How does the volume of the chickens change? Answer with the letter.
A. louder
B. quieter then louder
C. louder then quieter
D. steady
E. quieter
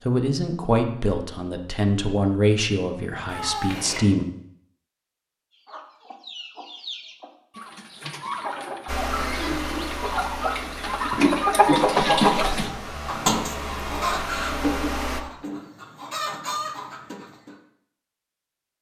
C.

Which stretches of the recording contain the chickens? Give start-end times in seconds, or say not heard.
5.5-17.6.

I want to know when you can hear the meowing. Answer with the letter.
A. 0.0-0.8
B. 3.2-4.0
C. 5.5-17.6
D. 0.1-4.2
B.